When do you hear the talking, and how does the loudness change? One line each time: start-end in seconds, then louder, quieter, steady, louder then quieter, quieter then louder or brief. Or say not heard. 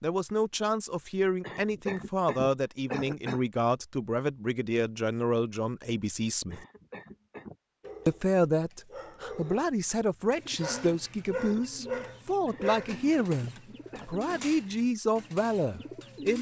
0.0-6.7 steady
8.1-16.3 steady.